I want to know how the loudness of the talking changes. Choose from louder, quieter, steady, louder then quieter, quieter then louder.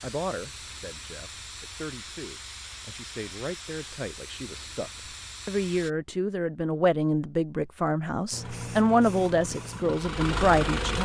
louder.